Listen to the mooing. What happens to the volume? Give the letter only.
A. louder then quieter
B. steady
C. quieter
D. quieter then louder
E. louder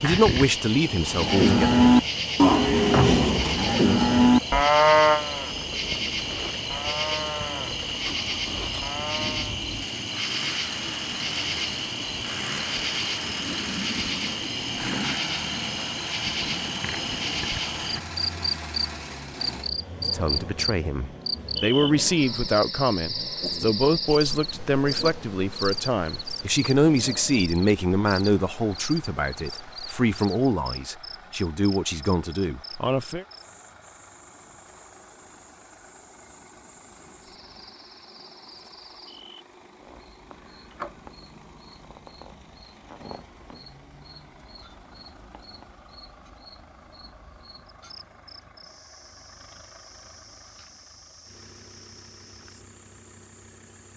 C.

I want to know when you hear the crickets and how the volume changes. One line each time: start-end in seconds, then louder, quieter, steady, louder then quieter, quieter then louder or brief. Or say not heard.
0.0-53.9 quieter.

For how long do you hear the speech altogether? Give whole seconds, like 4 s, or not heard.
15 s.